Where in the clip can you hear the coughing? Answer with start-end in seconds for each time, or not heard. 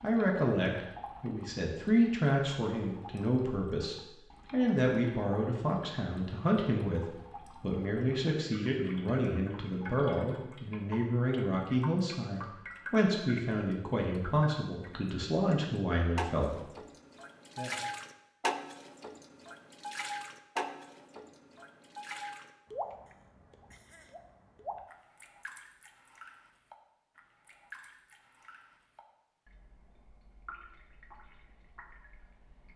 23.1-24.1.